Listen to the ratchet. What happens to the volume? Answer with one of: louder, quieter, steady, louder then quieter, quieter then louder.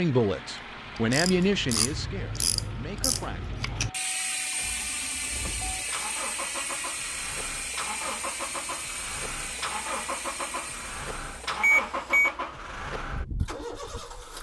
quieter.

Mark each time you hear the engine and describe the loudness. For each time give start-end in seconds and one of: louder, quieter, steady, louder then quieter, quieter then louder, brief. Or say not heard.
0.0-14.3 louder.